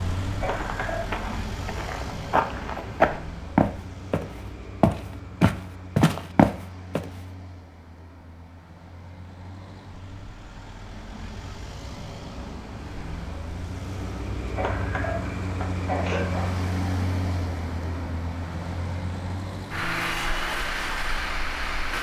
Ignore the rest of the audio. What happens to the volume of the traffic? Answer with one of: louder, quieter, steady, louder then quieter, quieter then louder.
quieter then louder.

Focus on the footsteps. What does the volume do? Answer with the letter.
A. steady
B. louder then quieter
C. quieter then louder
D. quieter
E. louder
E.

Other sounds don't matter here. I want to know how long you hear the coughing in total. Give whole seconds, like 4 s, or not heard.
3 s.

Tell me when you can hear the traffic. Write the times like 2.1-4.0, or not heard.
0.0-21.9.